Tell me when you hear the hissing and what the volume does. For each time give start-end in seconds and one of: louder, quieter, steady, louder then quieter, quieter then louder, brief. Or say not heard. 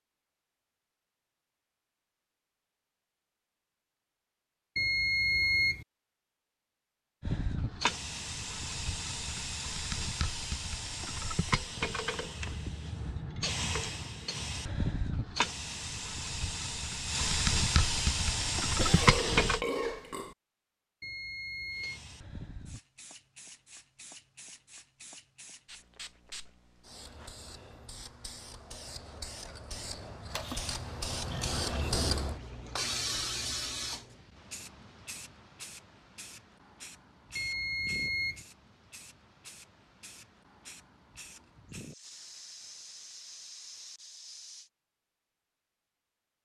7.2-19.6 louder
21.7-44.7 louder then quieter.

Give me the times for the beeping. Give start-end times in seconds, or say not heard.
4.8-5.8, 21.0-22.0, 37.4-38.5.